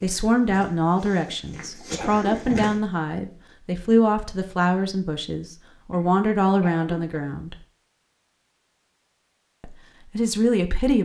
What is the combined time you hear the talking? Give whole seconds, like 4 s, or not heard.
9 s.